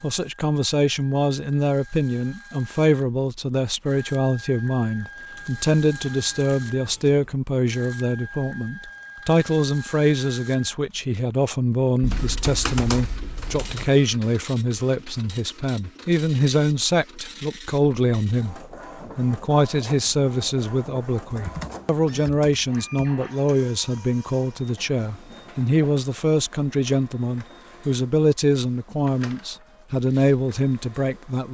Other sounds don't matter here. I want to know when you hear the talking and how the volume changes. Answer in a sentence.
You can hear the talking from 0.0 to 31.4 s, at a steady volume.